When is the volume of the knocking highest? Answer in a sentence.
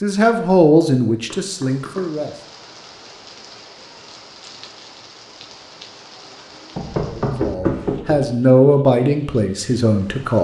The loudest moment of the knocking is at 8 seconds.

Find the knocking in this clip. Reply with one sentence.
The knocking can be heard from 1.3 to 2.1 s and from 6.8 to 8.3 s.